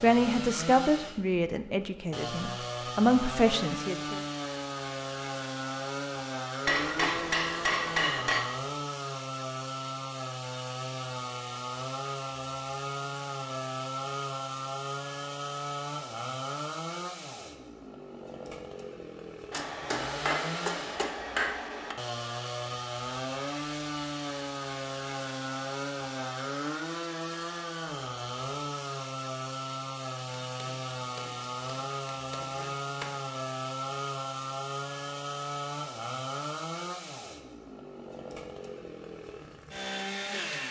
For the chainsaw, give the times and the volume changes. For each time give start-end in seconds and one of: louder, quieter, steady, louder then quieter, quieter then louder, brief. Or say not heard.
0.0-40.6 steady.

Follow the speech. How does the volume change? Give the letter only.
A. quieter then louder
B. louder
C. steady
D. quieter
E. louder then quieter
A.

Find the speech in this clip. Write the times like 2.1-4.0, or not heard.
0.0-4.2.